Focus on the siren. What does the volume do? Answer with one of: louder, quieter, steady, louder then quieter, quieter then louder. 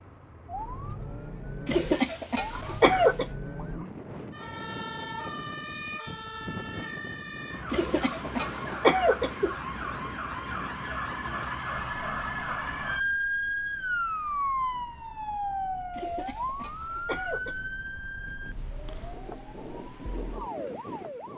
louder then quieter.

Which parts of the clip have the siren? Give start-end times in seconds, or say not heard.
0.0-21.3.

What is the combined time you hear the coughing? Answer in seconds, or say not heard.
5 s.